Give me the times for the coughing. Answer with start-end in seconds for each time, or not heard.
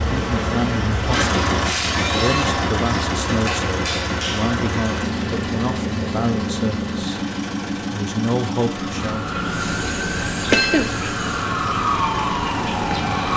10.4-11.1.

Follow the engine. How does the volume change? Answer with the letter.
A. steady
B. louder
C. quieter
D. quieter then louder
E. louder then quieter
C.